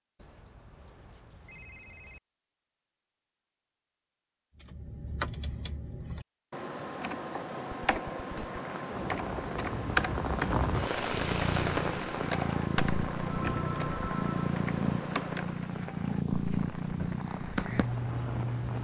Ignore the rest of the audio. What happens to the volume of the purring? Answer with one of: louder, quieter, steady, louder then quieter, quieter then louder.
steady.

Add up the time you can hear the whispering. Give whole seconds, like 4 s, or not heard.
not heard.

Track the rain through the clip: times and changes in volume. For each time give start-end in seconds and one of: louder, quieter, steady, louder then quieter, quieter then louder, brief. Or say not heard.
8.6-18.7 quieter.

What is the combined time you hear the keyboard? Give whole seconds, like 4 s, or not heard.
11 s.